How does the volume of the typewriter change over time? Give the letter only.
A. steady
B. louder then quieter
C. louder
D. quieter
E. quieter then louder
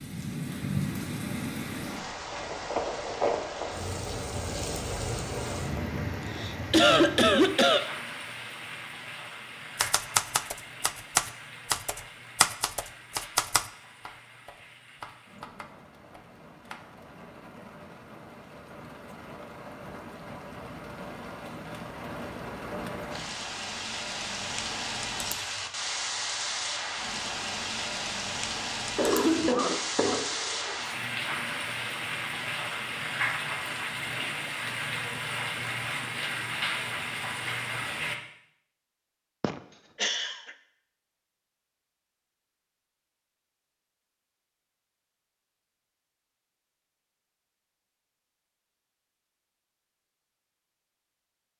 D.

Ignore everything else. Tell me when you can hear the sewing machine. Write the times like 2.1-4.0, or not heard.
not heard.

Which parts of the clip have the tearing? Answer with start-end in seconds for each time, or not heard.
not heard.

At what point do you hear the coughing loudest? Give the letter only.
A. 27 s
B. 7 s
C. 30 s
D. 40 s
B.